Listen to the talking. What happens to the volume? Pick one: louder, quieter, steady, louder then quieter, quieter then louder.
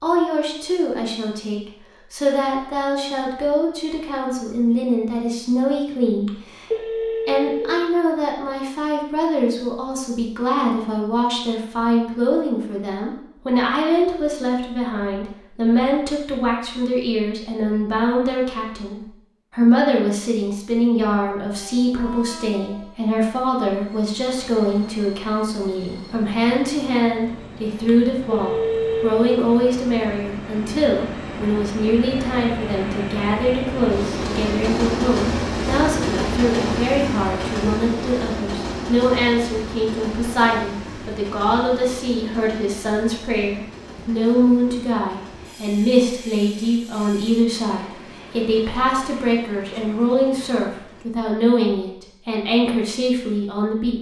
steady.